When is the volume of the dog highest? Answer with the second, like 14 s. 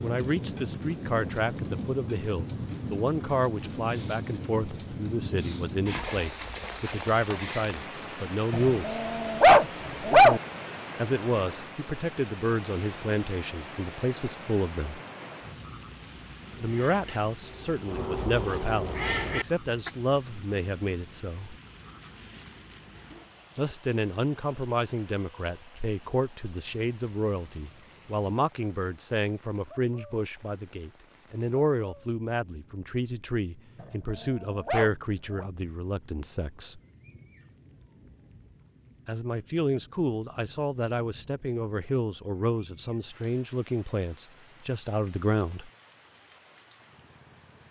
10 s.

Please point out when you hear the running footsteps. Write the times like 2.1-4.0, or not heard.
not heard.